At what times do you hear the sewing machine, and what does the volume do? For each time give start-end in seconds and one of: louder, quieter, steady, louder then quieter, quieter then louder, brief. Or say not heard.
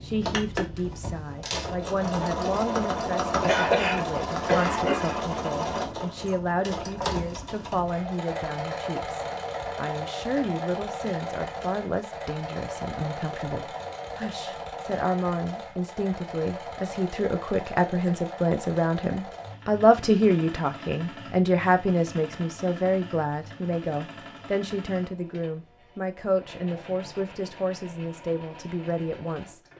0.0-29.7 quieter.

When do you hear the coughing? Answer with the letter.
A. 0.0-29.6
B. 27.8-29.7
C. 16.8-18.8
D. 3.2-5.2
D.